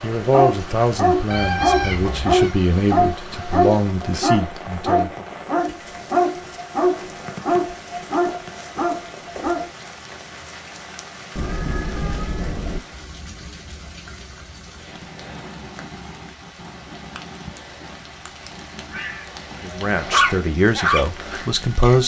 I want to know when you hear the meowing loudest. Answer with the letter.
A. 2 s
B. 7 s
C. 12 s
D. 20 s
A.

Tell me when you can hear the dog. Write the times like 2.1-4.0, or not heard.
0.0-9.7, 19.6-22.0.